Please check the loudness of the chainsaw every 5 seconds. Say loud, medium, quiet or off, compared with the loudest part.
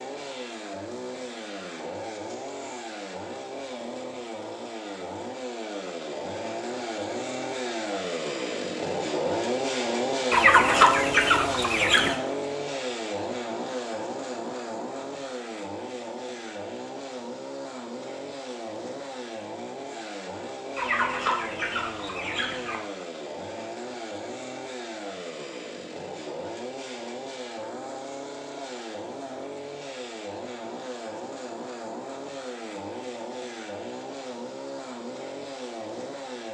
medium, loud, loud, medium, medium, medium, medium, medium.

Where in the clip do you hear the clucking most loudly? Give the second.
11 s.